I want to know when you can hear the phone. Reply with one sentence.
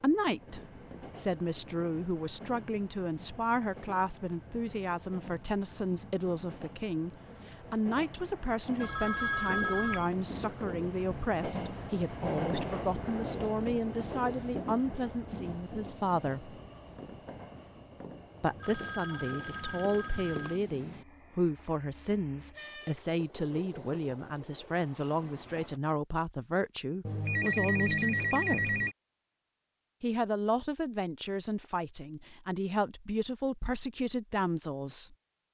The phone can be heard from 8.8 to 10.1 s, from 18.3 to 20.6 s and from 27.1 to 28.9 s.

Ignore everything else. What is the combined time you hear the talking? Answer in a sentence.
You can hear the talking for 32 seconds altogether.